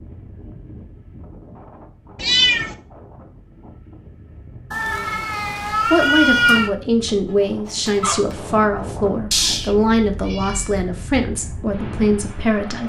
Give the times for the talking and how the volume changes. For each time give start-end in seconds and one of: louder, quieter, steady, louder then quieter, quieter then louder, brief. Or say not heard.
5.7-12.8 steady.